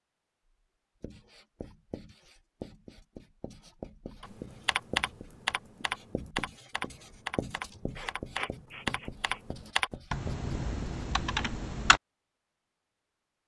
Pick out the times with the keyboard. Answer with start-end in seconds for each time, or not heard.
4.2-12.0.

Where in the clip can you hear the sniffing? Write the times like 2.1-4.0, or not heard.
8.0-9.4.